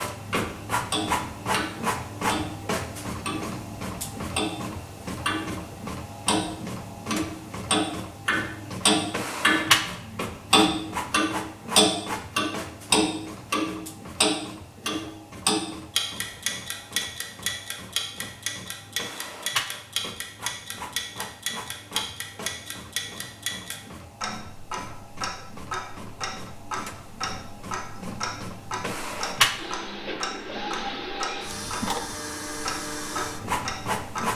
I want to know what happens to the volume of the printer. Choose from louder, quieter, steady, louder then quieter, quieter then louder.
quieter then louder.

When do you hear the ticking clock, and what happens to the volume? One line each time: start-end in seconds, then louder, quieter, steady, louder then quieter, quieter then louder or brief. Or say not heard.
0.3-5.5 quieter then louder
6.2-34.3 quieter.